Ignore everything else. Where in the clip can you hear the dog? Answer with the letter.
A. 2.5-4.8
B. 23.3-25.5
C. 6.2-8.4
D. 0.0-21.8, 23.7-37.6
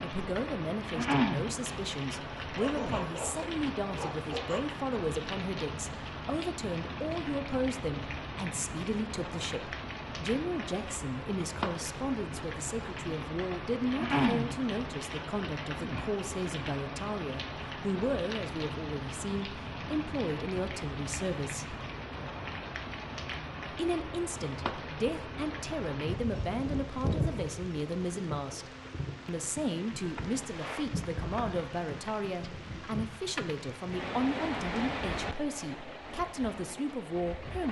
A.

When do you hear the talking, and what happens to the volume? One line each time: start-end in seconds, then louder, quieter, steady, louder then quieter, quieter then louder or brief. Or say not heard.
0.0-21.8 steady
23.7-37.6 steady.